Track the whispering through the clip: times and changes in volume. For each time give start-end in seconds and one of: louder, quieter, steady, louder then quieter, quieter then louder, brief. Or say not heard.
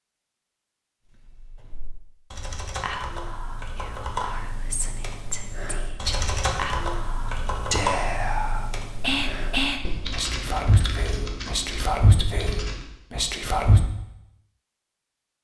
2.8-13.8 louder.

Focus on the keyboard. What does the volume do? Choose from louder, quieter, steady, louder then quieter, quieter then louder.
louder then quieter.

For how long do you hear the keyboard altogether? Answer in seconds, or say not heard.
12 s.